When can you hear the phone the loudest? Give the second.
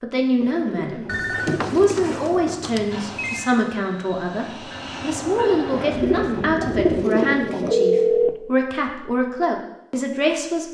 8 s.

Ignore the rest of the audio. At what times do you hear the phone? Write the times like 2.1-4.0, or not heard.
1.1-3.5, 7.7-8.3.